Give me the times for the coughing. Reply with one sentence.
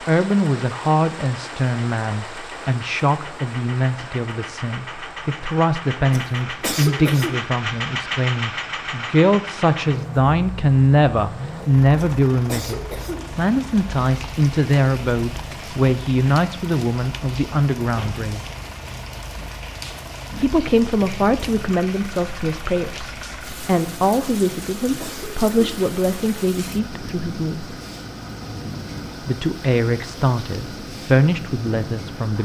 You can hear the coughing from 6.1 to 7.3 s, from 11.9 to 13.2 s and from 24.4 to 25.4 s.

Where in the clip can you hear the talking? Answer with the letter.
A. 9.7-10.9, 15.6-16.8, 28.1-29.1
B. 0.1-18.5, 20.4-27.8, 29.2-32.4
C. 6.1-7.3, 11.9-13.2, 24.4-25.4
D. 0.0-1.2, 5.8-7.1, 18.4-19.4
B.